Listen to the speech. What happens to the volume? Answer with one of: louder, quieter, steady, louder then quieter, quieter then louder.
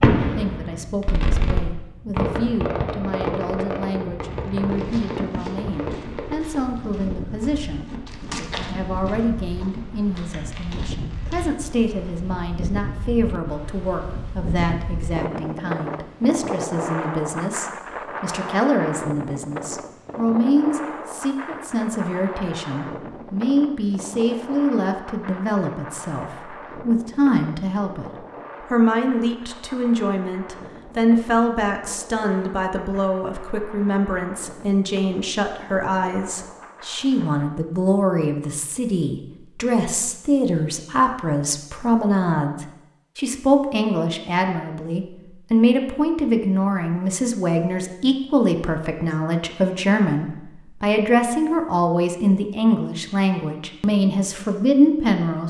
louder.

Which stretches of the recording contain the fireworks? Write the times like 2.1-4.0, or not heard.
0.0-6.8.